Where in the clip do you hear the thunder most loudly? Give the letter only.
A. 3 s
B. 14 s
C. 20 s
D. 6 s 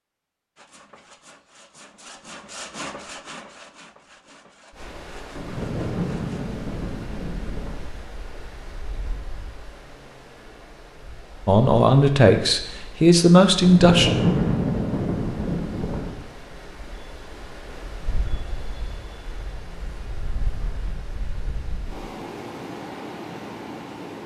B.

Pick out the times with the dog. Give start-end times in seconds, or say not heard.
not heard.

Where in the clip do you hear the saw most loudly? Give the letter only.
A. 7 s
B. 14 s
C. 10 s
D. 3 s
D.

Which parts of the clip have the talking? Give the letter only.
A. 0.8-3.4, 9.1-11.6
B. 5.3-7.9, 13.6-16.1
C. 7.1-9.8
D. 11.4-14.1
D.